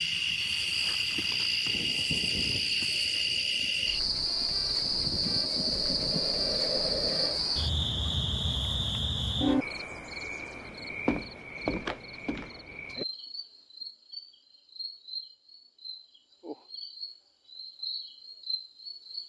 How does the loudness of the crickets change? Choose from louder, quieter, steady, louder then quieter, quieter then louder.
quieter.